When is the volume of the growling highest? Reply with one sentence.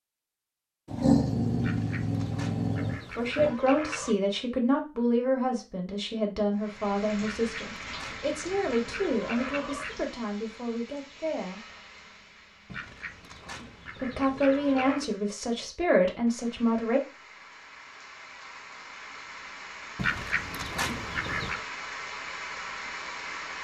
The loudest moment of the growling is at 1 second.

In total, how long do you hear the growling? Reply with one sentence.
You can hear the growling for 3 seconds altogether.